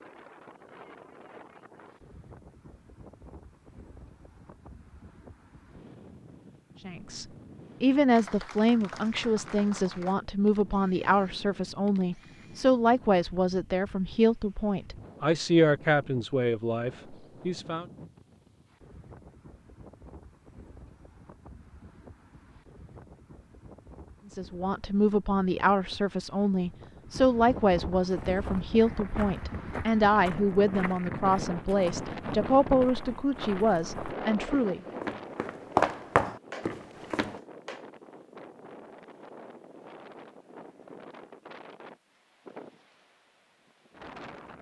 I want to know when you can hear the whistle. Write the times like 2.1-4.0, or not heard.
not heard.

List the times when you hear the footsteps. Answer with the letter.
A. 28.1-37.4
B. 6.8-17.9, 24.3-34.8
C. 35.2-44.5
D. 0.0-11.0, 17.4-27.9
A.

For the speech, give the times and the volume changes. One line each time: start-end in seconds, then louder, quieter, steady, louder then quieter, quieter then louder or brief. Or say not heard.
6.8-17.9 steady
24.3-34.8 steady.